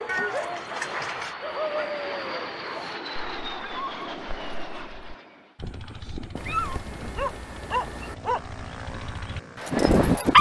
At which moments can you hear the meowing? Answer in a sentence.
The meowing can be heard from 0.1 to 1.4 s and from 6.3 to 8.2 s.